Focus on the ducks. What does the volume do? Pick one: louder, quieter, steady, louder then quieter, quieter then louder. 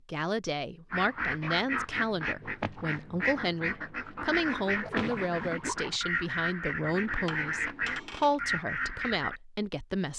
steady.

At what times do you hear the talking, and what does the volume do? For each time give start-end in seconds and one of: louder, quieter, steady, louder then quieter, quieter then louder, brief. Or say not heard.
0.1-10.1 steady.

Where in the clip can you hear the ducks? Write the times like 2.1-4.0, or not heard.
0.9-9.4.